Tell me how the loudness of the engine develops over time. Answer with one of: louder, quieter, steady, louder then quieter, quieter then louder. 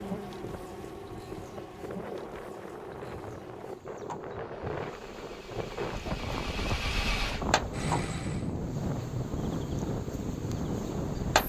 louder then quieter.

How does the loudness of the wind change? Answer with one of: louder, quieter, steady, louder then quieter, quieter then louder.
louder.